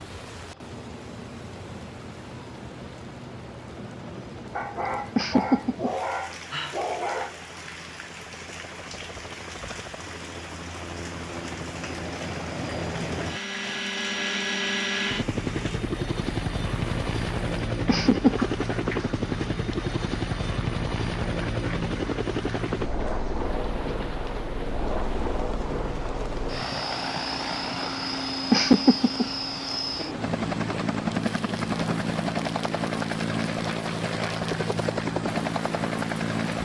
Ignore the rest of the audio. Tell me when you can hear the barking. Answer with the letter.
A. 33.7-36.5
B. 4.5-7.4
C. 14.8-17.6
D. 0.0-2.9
B.